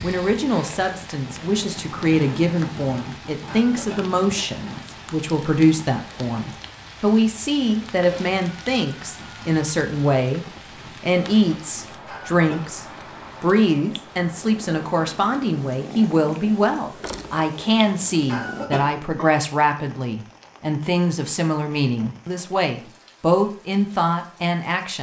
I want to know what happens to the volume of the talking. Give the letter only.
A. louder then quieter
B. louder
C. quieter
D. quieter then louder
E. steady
E.